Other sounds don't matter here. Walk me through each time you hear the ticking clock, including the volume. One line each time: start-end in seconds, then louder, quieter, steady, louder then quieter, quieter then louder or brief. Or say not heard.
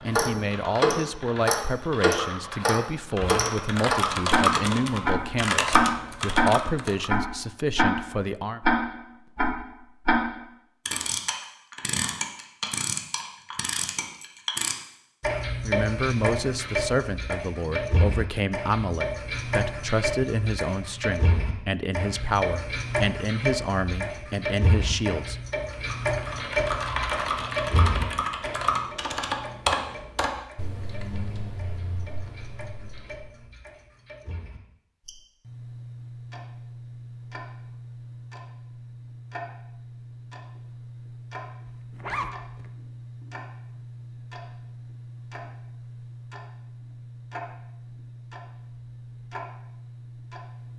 0.0-50.7 quieter.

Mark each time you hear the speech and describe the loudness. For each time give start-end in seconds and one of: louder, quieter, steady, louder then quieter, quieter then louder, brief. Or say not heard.
0.0-8.6 steady
15.6-25.4 steady.